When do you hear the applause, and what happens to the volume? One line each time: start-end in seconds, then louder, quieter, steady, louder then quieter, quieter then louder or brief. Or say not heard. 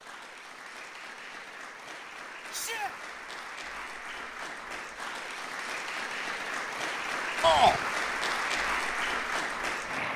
0.0-10.1 louder.